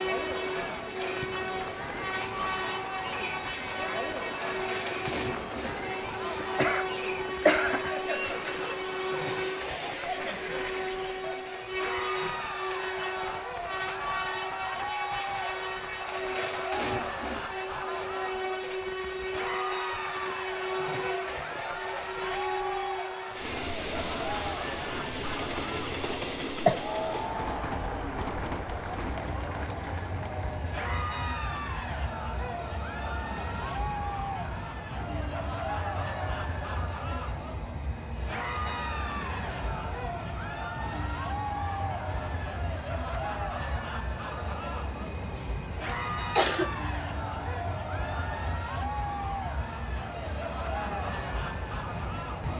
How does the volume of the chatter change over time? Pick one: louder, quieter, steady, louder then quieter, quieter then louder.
steady.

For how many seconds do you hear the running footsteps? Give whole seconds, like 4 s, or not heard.
not heard.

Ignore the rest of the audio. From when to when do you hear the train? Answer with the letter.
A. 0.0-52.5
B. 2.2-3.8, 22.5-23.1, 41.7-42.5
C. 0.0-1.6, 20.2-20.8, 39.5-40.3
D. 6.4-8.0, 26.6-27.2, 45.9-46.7
A.